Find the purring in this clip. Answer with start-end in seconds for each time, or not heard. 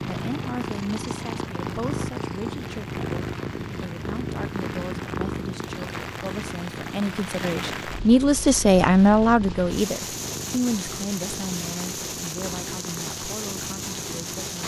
0.0-14.6.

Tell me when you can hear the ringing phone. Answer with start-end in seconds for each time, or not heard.
not heard.